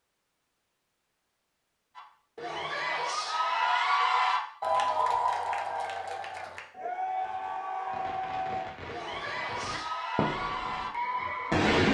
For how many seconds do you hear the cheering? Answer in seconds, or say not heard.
10 s.